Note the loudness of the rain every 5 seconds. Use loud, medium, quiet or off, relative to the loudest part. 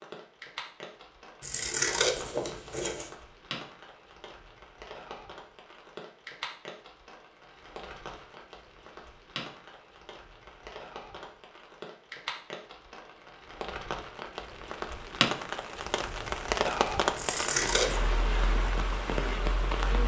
quiet, quiet, medium, loud.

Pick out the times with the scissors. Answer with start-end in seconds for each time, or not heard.
1.4-3.1, 17.1-18.0.